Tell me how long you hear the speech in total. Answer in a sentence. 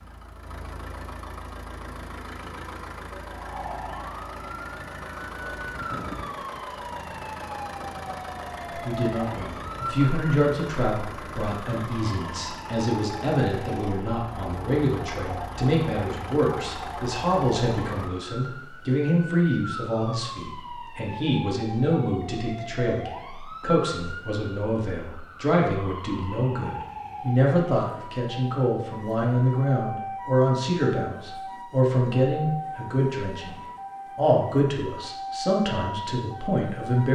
You can hear the speech for 28 seconds altogether.